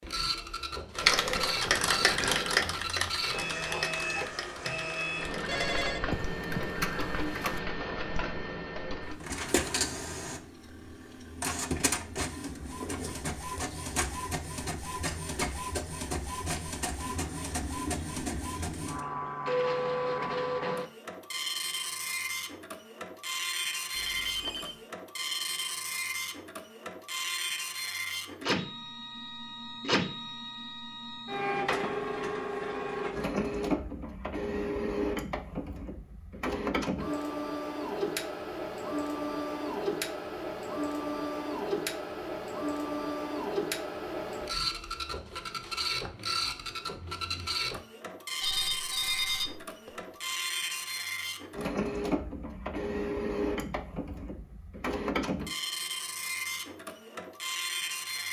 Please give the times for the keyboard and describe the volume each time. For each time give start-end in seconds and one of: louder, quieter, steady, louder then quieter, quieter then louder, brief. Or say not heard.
0.9-7.6 quieter then louder.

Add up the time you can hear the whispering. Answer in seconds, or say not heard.
not heard.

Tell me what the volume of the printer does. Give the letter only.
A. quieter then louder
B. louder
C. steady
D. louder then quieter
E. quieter
C.